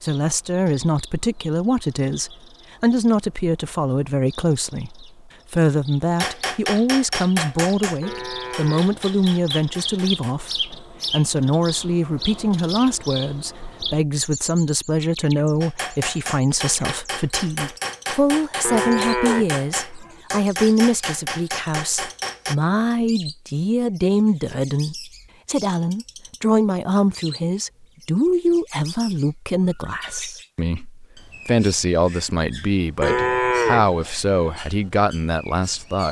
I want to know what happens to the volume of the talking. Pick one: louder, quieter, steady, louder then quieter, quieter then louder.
steady.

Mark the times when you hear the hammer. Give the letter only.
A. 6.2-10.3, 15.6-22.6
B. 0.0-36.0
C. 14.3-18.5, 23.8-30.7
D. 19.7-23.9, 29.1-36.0
A.